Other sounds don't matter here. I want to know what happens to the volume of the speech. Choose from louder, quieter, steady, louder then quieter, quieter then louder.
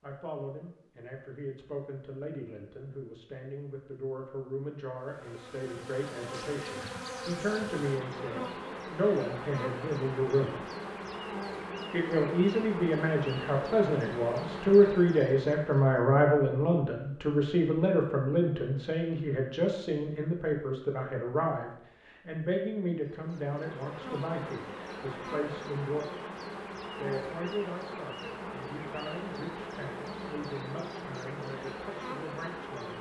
louder then quieter.